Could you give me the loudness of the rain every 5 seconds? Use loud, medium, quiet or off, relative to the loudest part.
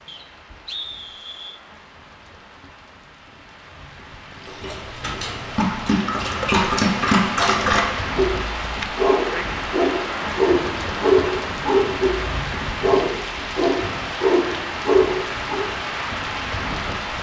quiet, loud, loud, loud.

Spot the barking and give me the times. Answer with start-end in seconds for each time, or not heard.
4.5-15.7.